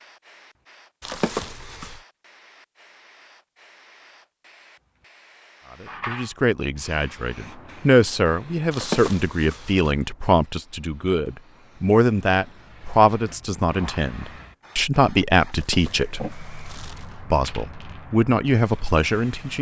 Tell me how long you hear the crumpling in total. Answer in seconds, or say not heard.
4 s.